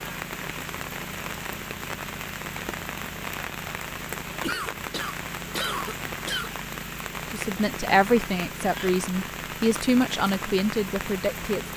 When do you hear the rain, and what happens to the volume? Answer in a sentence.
You can hear the rain from 0.0 to 11.7 s, at a steady volume.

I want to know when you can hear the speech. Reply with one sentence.
The speech can be heard from 7.3 to 11.7 s.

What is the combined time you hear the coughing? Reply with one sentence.
You can hear the coughing for 2 seconds altogether.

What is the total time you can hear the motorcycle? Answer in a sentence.
The motorcycle can't be heard in this clip.